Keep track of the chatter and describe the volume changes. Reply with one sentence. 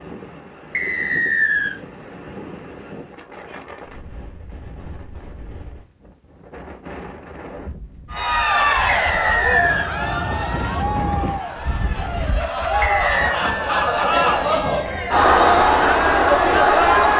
The volume of the chatter goes down, then up.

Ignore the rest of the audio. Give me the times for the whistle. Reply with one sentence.
You can hear the whistle from 0.7 to 1.8 s, from 8.8 to 9.9 s and from 12.8 to 13.4 s.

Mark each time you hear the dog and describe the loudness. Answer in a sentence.
The dog can't be heard in this clip.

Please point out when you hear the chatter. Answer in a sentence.
You can hear the chatter from 8.1 to 17.1 s.